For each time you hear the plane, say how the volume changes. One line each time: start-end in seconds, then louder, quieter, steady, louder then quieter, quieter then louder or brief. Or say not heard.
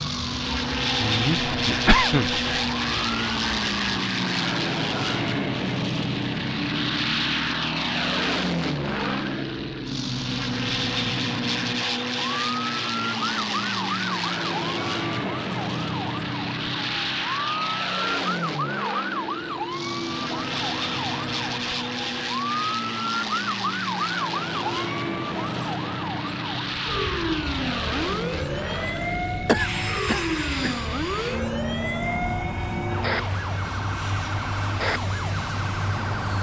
0.0-36.3 quieter.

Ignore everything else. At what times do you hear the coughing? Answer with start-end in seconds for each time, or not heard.
1.0-2.4, 29.4-30.8.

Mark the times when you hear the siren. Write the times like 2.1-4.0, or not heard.
0.0-36.3.